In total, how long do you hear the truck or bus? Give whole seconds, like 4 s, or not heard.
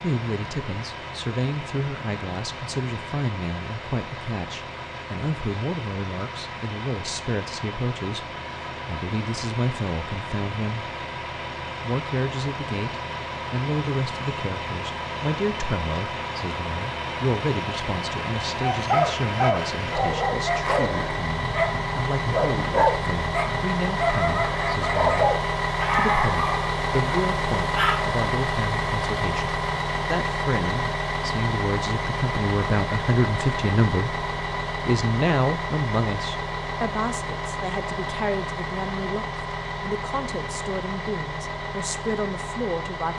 43 s.